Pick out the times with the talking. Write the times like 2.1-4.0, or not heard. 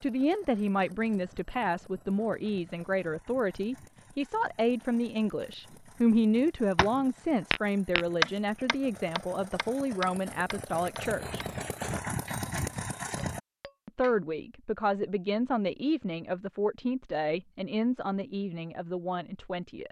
0.0-11.4, 13.8-19.8.